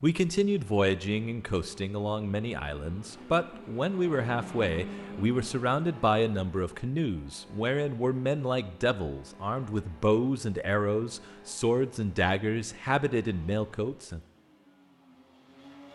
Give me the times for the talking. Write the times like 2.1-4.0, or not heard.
0.0-14.2.